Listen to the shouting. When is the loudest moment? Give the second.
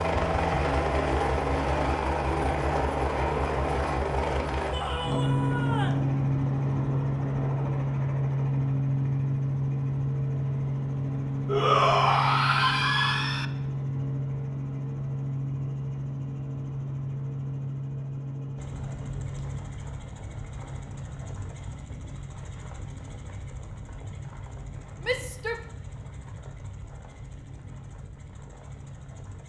12 s.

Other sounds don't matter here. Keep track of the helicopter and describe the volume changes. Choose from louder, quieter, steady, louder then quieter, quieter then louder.
quieter.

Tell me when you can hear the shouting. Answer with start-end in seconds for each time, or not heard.
4.7-6.0, 11.4-13.4, 25.0-25.6.